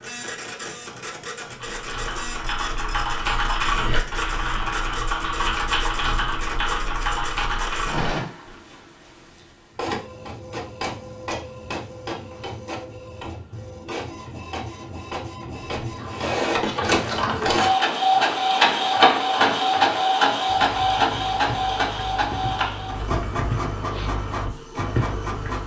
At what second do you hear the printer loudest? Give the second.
19 s.